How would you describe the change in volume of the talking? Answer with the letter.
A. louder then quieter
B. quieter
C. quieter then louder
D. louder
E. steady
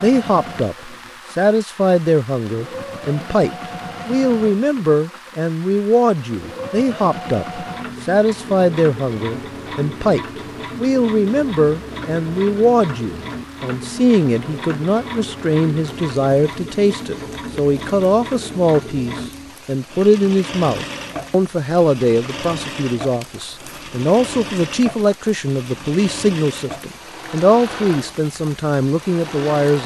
E.